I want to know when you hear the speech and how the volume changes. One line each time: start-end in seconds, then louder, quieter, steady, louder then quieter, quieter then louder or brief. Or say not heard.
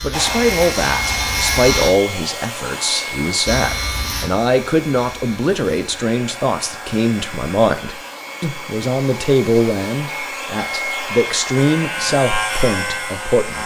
0.0-13.6 steady.